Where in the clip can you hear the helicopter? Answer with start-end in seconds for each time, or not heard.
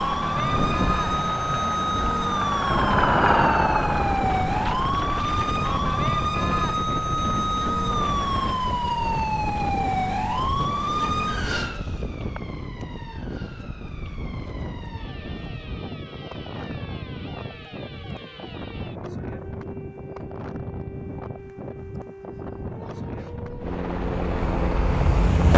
0.0-5.2, 23.6-25.5.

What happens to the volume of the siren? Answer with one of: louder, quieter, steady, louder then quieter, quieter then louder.
quieter.